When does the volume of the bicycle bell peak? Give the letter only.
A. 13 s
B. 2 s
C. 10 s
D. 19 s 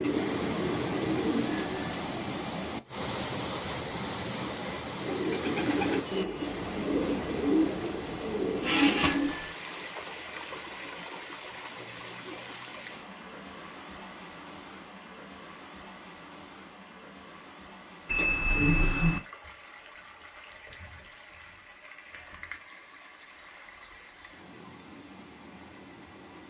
D.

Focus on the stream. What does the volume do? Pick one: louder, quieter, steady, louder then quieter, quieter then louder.
quieter.